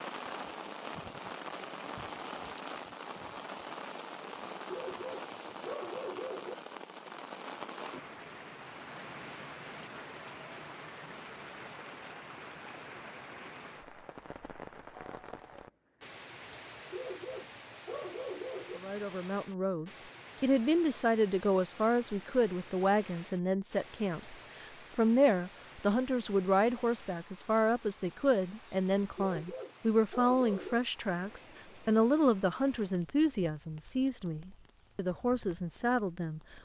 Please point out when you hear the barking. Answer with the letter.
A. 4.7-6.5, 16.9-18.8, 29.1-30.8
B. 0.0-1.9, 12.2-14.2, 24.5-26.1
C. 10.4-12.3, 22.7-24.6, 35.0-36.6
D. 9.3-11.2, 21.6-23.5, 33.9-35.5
A.